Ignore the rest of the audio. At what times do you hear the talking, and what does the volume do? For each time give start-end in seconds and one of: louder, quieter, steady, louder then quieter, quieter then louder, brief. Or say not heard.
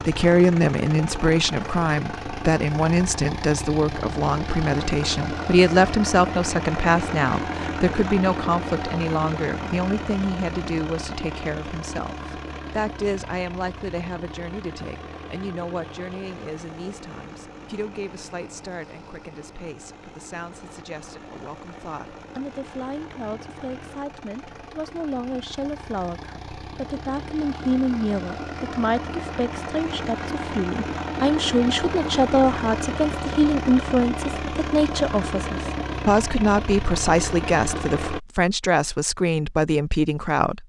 0.1-40.6 quieter then louder.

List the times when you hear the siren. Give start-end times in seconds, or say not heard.
not heard.